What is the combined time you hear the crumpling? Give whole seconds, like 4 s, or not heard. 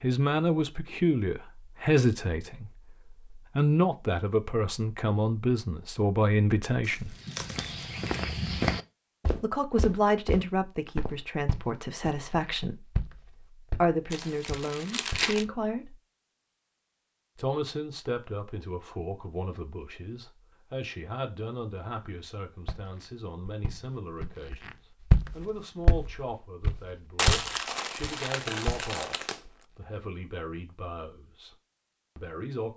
5 s.